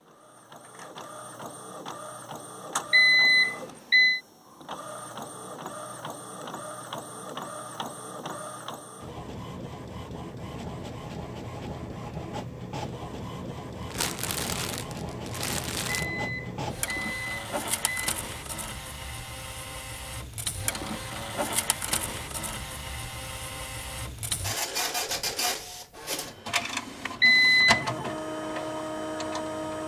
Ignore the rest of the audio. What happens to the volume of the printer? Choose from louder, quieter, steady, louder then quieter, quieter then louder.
louder.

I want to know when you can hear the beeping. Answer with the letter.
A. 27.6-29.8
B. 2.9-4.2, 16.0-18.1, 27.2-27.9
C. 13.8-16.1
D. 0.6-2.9
B.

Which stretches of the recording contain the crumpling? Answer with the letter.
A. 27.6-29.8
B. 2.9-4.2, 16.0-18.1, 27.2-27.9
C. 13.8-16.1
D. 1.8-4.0
C.